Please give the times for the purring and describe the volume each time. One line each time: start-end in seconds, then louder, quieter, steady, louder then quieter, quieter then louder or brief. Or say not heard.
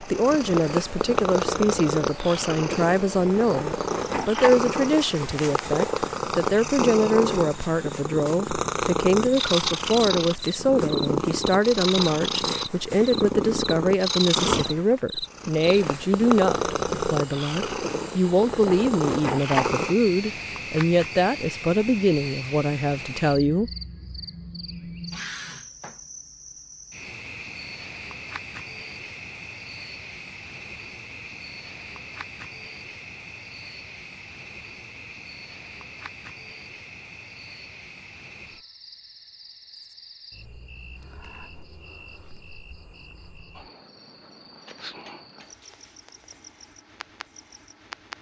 0.0-19.9 steady.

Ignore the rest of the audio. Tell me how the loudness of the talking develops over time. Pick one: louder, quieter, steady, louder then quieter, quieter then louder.
steady.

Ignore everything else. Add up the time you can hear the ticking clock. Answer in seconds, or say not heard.
not heard.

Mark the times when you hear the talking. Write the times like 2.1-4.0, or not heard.
0.0-23.7.